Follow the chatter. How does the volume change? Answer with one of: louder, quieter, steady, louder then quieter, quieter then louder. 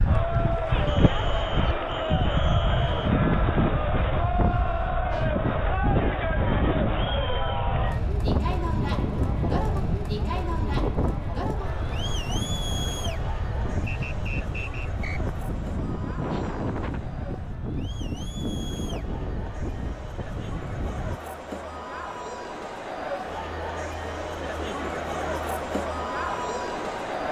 quieter then louder.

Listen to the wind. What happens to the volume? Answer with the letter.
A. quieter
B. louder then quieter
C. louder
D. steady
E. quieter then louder
A.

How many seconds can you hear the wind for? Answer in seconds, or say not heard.
21 s.